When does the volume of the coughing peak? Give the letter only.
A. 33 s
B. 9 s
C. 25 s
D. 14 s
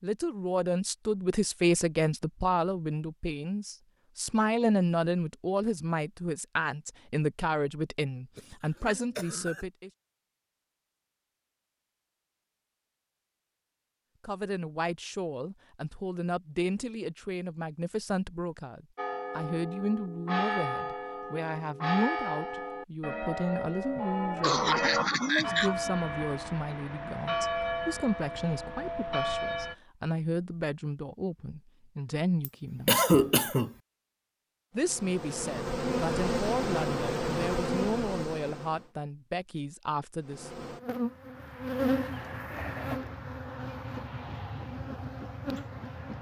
A.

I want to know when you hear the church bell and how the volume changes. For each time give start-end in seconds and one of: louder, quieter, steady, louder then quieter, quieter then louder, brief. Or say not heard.
18.9-29.8 steady.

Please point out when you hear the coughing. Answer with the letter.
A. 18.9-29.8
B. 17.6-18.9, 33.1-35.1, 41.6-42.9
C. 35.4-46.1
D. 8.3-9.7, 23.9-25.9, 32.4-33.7
D.